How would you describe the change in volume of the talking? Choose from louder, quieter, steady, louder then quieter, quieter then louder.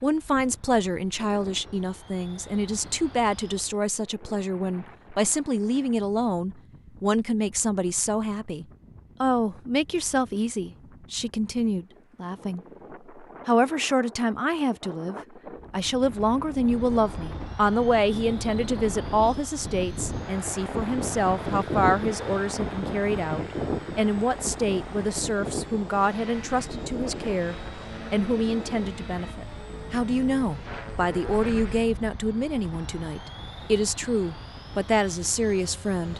steady.